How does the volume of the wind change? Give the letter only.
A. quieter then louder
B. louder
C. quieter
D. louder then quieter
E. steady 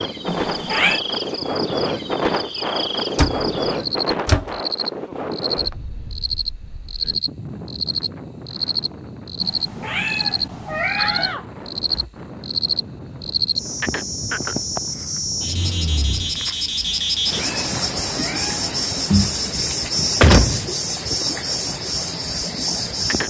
C.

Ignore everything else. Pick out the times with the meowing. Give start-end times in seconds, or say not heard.
0.2-1.0, 9.4-11.3, 16.9-19.3.